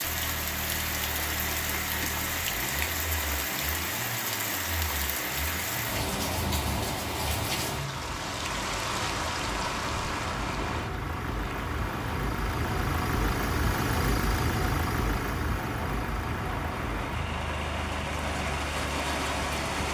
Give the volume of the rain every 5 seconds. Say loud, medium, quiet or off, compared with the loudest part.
loud, loud, medium, loud.